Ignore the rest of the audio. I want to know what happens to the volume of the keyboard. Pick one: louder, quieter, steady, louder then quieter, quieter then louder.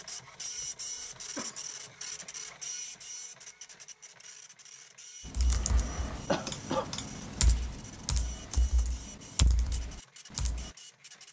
quieter then louder.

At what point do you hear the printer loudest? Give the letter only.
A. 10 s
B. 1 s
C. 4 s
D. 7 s
B.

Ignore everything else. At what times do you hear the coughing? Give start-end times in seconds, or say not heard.
0.6-1.6, 6.2-6.9.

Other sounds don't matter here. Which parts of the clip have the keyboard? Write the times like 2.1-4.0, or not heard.
5.2-10.7.